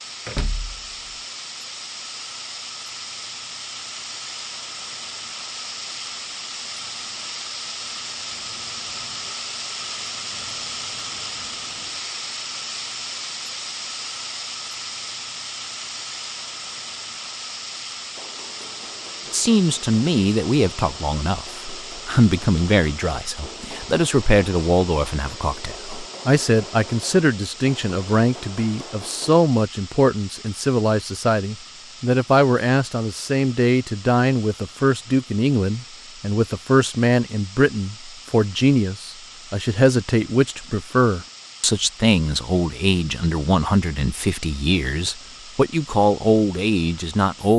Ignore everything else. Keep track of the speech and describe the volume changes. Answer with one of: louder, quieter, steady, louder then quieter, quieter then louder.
steady.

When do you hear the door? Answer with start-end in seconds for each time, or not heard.
0.2-0.9.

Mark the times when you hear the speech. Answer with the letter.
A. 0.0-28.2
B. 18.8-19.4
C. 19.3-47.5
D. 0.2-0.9
C.